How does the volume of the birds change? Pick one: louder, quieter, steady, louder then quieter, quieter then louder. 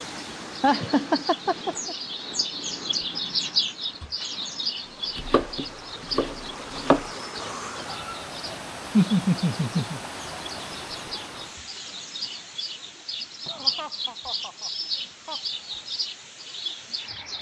quieter then louder.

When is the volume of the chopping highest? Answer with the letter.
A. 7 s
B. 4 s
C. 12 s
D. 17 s
A.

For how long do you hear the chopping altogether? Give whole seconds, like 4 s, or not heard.
2 s.